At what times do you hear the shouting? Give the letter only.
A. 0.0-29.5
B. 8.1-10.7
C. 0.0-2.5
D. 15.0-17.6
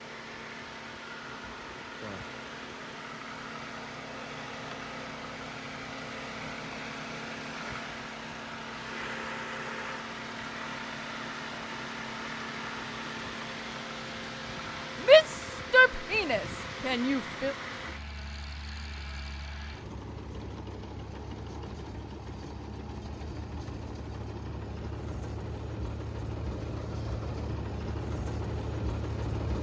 D.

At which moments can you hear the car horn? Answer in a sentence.
You can't hear the car horn here.